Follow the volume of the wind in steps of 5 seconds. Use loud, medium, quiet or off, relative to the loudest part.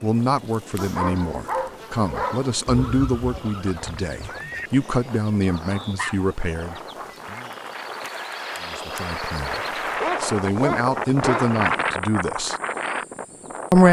quiet, medium, loud.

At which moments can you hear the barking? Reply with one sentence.
You can hear the barking from 0.8 to 3.0 s, from 5.4 to 7.2 s and from 10.0 to 11.5 s.